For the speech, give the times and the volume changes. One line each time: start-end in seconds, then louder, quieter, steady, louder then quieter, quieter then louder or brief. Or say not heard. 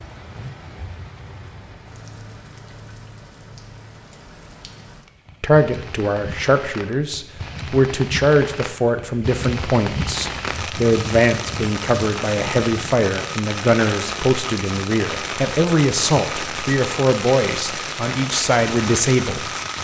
5.4-19.5 steady.